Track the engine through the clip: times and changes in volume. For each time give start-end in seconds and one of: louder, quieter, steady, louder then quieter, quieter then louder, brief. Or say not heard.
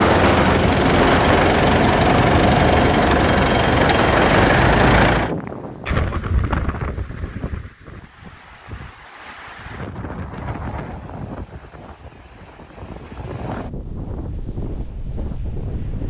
0.0-5.3 steady.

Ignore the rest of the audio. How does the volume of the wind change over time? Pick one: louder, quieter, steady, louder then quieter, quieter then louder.
quieter.